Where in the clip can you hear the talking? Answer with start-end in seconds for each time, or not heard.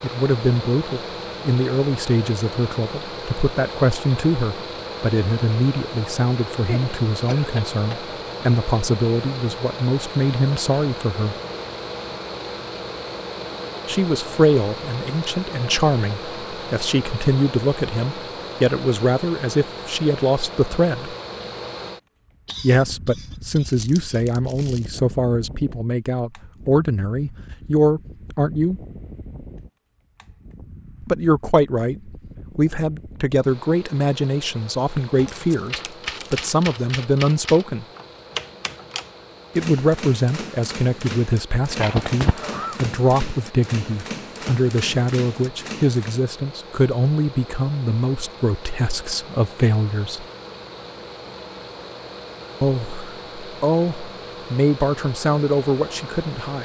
0.0-11.3, 13.8-21.1, 22.6-28.8, 31.0-37.9, 39.5-50.2, 52.6-56.6.